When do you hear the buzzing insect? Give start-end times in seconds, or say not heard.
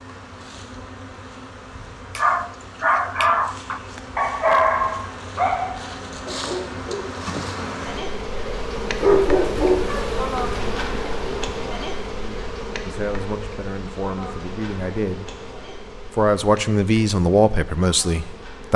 0.0-18.7.